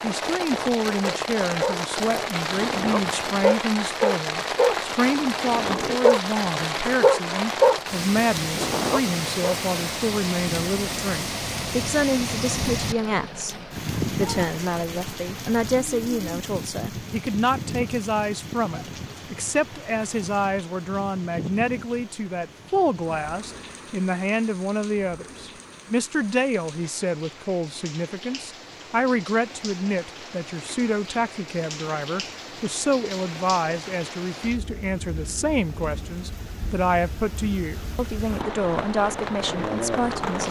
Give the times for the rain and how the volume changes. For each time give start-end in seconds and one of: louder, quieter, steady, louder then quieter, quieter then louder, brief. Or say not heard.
0.0-40.4 quieter then louder.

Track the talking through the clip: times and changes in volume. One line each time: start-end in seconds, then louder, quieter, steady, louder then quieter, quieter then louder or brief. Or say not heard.
0.0-40.4 steady.